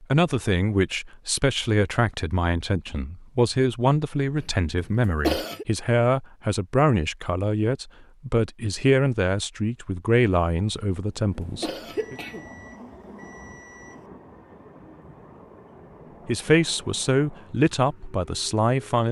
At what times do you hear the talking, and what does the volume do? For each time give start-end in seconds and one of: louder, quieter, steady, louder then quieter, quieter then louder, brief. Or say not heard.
0.0-12.2 steady
16.2-19.0 brief.